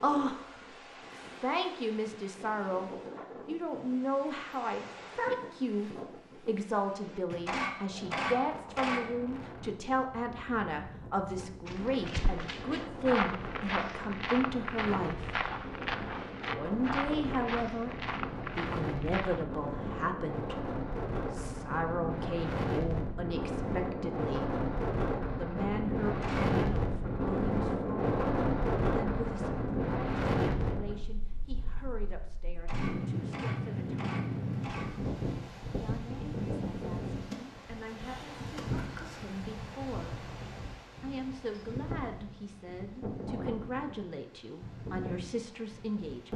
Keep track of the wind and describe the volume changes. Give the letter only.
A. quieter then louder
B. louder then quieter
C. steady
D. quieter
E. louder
B.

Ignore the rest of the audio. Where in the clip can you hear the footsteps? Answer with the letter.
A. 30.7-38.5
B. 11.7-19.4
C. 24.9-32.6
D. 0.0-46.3
B.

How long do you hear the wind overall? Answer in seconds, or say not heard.
46 s.